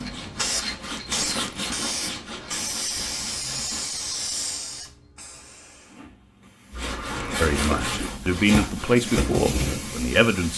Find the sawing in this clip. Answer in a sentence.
You can hear the sawing from 0.0 to 3.9 s and from 6.7 to 10.5 s.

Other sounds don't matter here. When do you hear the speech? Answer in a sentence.
The speech can be heard from 7.3 to 10.5 s.